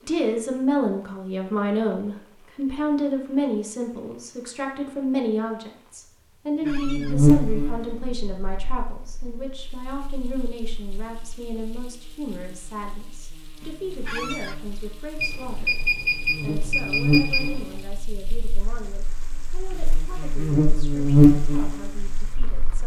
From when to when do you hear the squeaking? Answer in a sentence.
You can hear the squeaking from 6.6 to 7.2 s and from 14.1 to 14.6 s.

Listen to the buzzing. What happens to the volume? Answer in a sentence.
The volume of the buzzing goes down, then up.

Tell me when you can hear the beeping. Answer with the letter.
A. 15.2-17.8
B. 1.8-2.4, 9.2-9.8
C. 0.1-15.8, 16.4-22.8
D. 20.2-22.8
A.